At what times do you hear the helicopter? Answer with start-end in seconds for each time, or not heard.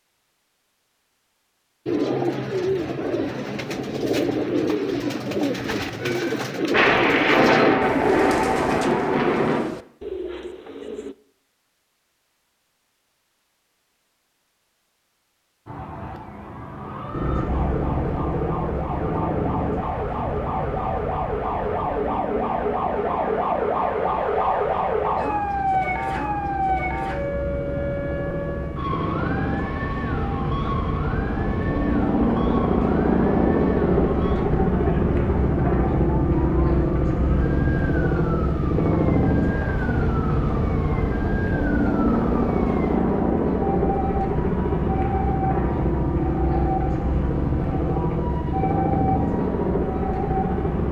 17.1-50.8.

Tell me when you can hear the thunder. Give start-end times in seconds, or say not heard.
6.7-9.7.